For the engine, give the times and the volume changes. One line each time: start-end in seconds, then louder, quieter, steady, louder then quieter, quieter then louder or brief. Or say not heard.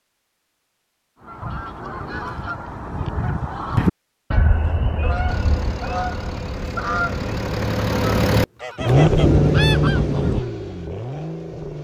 5.2-11.8 louder then quieter.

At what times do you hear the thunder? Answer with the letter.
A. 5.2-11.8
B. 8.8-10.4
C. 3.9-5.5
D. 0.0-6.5
B.